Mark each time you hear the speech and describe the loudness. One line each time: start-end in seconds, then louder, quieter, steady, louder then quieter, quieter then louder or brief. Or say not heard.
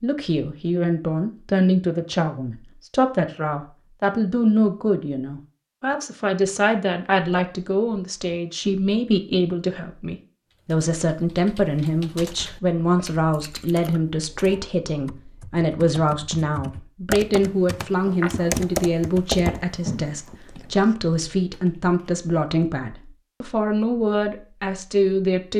0.0-25.5 steady.